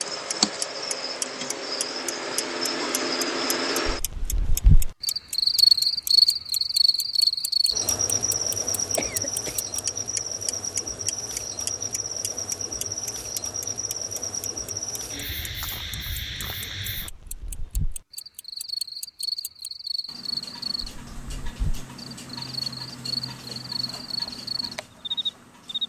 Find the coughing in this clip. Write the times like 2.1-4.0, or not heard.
8.9-9.6.